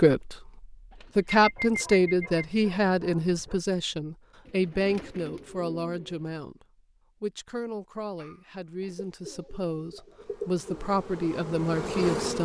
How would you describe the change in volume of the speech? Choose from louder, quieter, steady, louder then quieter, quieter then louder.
quieter then louder.